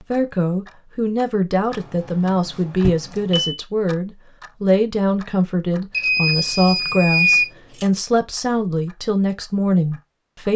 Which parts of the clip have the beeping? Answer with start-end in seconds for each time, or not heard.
2.8-3.5, 5.9-7.5.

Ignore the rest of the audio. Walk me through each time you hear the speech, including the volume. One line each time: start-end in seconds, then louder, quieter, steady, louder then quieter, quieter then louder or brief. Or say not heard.
0.0-10.5 steady.